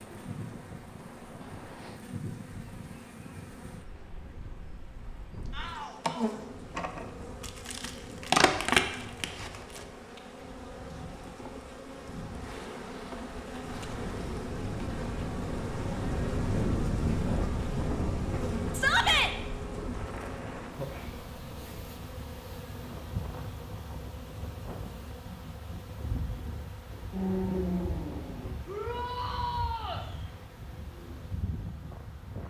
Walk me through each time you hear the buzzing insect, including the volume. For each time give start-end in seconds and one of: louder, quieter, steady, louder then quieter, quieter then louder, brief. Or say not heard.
0.0-32.4 louder then quieter.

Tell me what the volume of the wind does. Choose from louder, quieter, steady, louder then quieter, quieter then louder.
louder then quieter.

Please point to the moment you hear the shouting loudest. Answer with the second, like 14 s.
19 s.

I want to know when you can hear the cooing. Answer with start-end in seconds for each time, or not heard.
not heard.